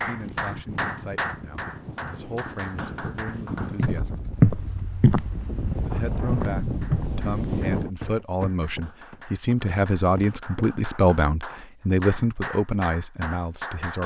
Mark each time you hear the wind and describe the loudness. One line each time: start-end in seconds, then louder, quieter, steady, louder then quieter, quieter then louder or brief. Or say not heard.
0.0-7.9 louder.